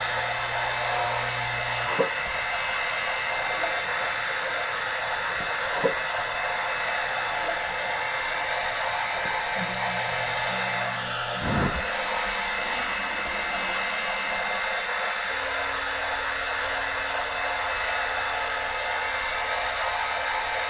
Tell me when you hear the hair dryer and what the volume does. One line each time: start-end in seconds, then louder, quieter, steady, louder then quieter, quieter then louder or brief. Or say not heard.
0.0-20.6 steady.